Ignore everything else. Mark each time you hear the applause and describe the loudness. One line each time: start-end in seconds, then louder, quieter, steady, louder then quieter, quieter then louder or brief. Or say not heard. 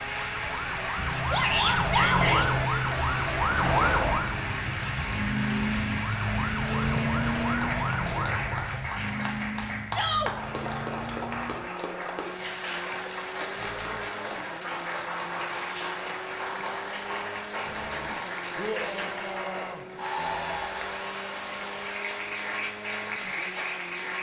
0.0-24.1 steady.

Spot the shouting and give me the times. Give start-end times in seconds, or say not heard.
1.3-2.5, 9.9-10.3, 18.6-19.9.